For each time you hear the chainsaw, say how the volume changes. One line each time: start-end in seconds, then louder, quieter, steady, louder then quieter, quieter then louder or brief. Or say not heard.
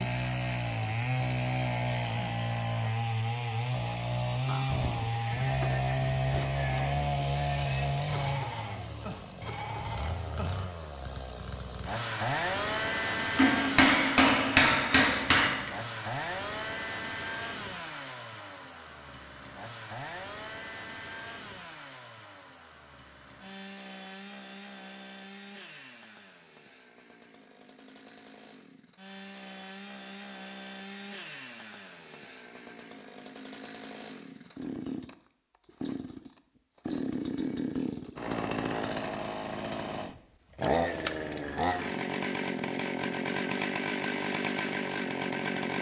0.0-45.7 quieter then louder.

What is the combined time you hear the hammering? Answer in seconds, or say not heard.
2 s.